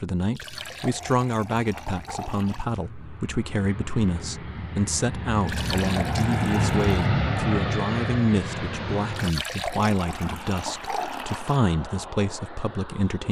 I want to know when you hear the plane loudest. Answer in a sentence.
The volume of the plane peaks at 7 seconds.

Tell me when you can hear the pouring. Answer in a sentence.
The pouring can be heard from 0.3 to 2.8 s, from 5.5 to 7.0 s and from 9.1 to 11.6 s.